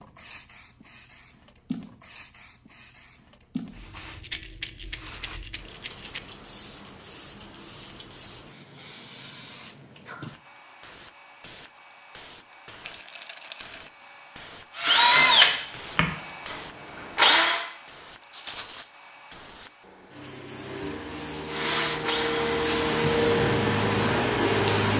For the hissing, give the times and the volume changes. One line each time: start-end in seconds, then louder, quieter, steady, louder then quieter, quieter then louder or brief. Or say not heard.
0.0-24.9 louder.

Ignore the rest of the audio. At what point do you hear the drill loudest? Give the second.
15 s.